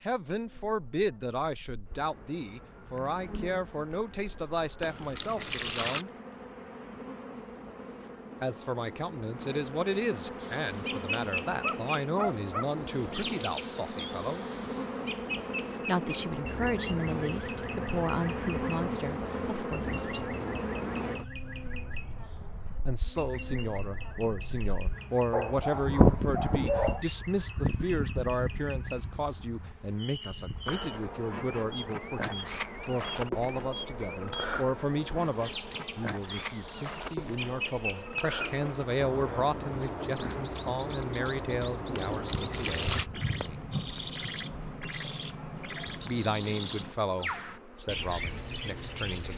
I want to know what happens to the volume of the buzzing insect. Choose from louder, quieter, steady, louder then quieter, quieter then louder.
louder then quieter.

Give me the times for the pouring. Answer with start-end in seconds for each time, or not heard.
4.8-6.0, 41.9-43.1.